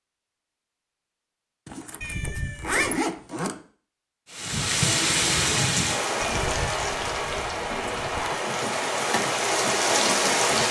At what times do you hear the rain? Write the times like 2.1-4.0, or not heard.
4.3-10.6.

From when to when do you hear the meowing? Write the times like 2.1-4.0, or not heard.
2.0-3.0, 6.2-8.2.